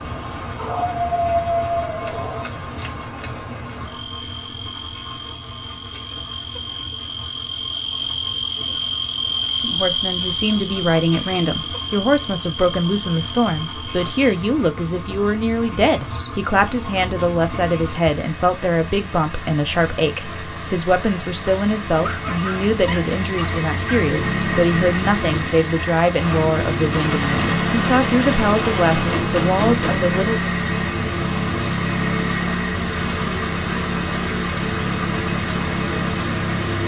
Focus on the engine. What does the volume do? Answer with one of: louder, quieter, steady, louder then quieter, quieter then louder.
louder.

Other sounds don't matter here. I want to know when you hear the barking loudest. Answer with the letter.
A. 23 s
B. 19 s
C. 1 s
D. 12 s
C.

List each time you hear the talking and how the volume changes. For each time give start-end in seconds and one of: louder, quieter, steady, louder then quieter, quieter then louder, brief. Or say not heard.
9.6-30.5 steady.